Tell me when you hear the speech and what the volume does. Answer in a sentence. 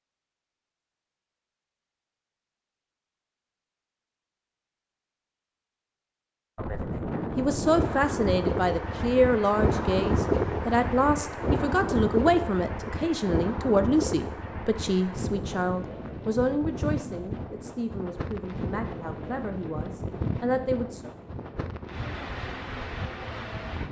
The speech can be heard from 7.3 to 21.1 s, getting quieter.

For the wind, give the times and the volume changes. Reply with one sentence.
You can hear the wind from 6.5 to 23.8 s, getting quieter.